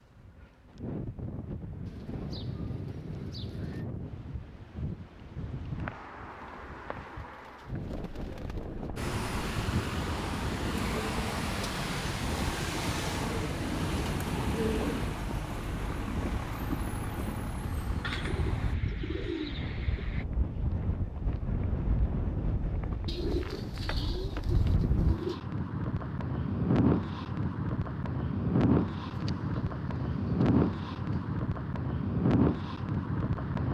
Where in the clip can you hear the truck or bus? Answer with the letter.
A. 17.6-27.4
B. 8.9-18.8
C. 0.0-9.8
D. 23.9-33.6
B.